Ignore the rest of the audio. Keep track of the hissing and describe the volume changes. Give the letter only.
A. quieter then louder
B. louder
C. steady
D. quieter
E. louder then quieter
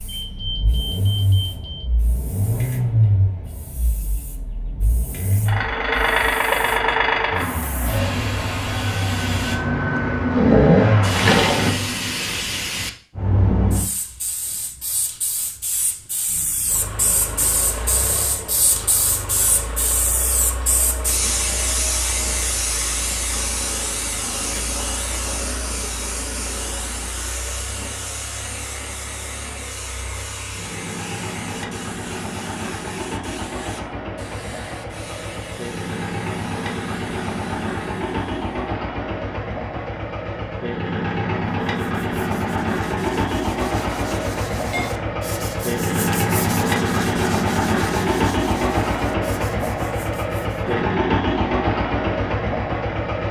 E.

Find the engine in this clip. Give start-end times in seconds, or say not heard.
0.0-11.8, 16.2-53.2.